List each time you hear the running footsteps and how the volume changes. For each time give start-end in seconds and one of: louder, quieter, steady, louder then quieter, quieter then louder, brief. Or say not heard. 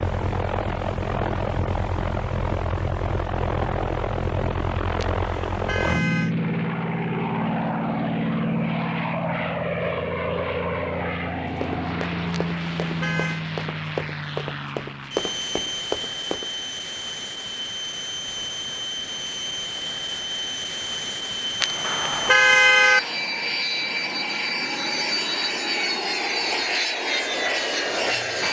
11.3-16.5 louder.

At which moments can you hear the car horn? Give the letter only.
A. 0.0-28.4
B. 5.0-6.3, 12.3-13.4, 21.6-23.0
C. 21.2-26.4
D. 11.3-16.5
B.